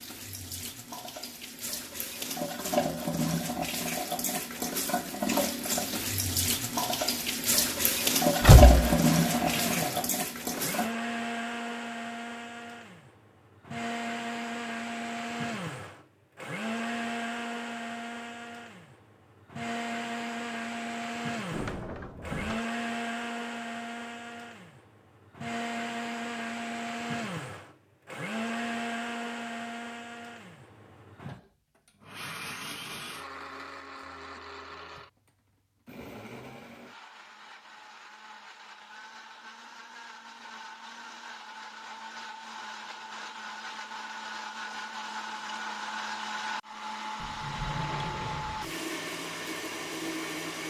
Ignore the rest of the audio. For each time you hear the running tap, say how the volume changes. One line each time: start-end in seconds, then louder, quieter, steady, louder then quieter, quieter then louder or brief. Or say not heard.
0.0-10.9 louder.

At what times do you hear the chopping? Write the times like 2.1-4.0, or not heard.
not heard.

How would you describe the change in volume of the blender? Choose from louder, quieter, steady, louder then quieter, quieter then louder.
quieter then louder.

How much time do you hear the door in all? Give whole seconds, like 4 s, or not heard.
3 s.